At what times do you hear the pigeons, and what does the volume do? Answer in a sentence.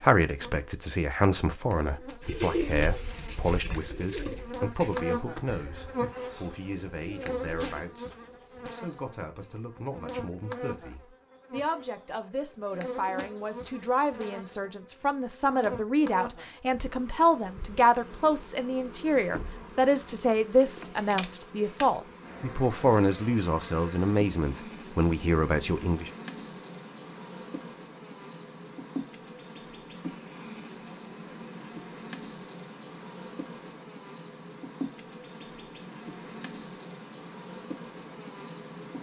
You can hear the pigeons from 2.2 to 7.8 s, getting quieter then louder.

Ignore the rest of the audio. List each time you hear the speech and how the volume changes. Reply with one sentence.
You can hear the speech from 0.0 to 26.1 s, getting quieter then louder.